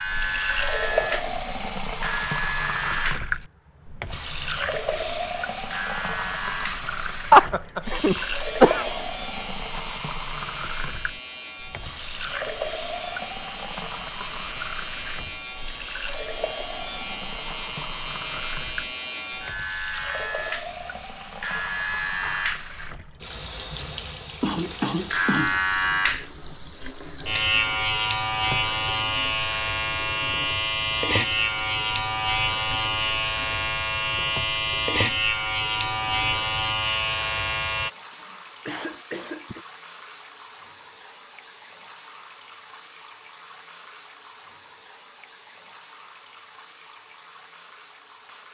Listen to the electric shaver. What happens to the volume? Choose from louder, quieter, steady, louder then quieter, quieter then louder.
quieter then louder.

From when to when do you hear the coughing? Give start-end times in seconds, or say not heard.
7.3-9.0, 24.4-25.6, 38.1-39.6.